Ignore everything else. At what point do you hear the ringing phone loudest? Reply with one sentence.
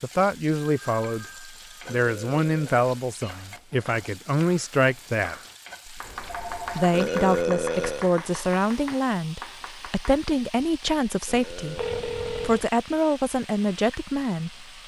The loudest moment of the ringing phone is at 12 seconds.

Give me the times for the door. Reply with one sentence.
The door can't be heard in this clip.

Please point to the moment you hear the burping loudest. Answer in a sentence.
The loudest moment of the burping is at 7 seconds.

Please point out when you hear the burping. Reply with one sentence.
You can hear the burping from 1.9 to 2.8 s, from 6.9 to 8.1 s and from 11.2 to 12.0 s.